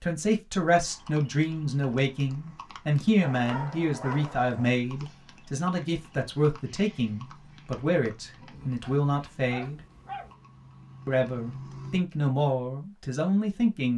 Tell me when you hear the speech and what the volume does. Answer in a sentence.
You can hear the speech from 0.0 to 9.8 s, at a steady volume; and briefly from 11.1 to 13.9 s.